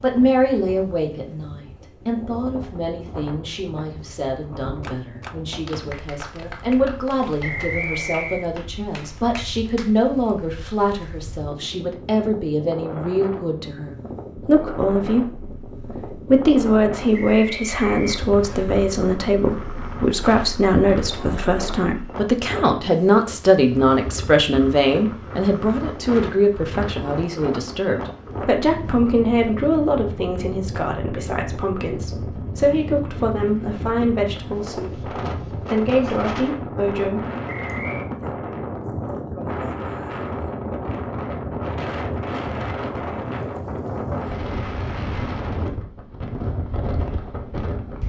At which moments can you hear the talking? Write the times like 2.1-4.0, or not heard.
0.0-37.2.